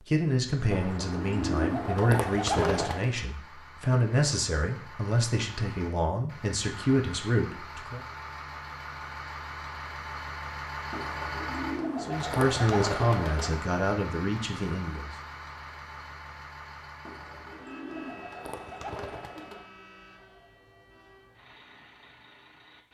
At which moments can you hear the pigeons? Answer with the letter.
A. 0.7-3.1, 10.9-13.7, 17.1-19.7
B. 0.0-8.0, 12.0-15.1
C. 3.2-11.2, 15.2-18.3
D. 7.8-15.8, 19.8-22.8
A.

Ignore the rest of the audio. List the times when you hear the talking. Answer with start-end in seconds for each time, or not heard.
0.0-8.0, 12.0-15.1.